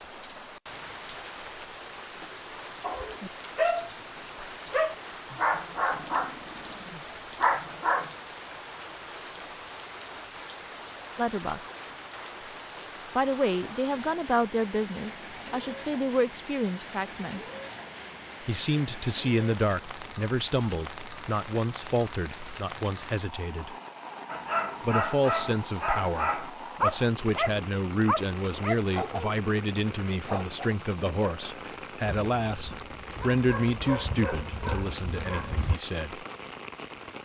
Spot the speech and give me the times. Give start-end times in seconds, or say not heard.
11.2-11.6, 13.2-17.4, 18.4-23.8, 24.8-36.2.